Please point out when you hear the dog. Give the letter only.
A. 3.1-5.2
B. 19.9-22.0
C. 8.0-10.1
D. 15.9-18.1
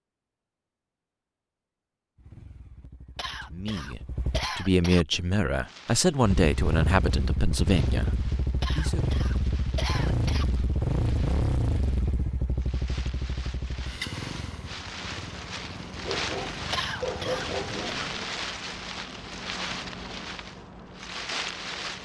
D.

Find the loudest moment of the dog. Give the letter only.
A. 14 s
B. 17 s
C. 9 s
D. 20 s
B.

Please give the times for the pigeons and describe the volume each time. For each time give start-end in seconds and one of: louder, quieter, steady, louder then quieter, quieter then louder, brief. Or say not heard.
not heard.